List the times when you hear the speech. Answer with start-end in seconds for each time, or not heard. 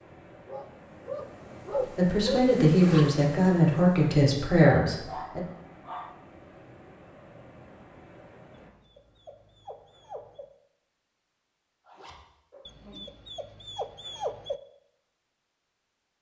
1.8-5.4.